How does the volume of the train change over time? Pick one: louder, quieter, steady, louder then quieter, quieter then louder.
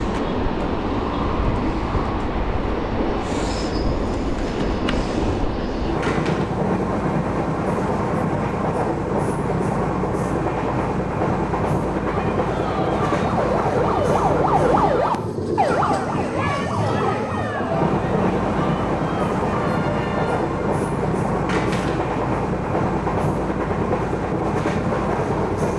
steady.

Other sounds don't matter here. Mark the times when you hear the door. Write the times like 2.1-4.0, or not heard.
6.0-6.5, 21.4-22.2.